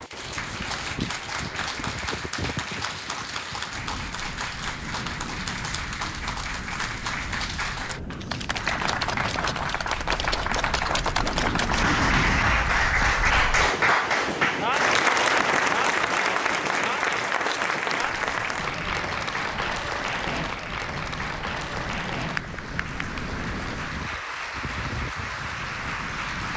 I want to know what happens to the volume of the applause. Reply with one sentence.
The volume of the applause goes up, then down.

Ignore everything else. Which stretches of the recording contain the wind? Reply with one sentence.
You can hear the wind from 0.0 to 26.5 s.